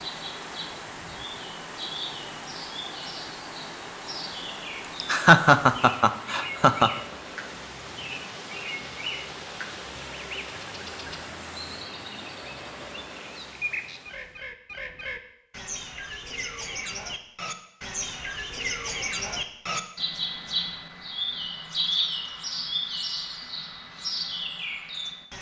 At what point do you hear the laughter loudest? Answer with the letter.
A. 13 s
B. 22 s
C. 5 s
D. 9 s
C.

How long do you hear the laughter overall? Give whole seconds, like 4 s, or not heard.
2 s.